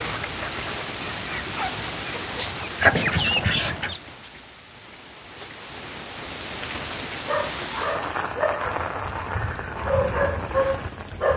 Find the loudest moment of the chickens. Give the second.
3 s.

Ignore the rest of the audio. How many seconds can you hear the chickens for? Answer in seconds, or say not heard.
4 s.